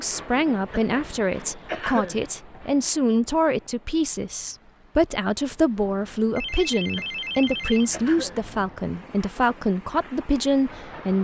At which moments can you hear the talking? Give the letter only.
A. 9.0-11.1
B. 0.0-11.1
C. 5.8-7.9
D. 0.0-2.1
B.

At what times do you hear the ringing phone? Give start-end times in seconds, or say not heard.
5.8-7.9.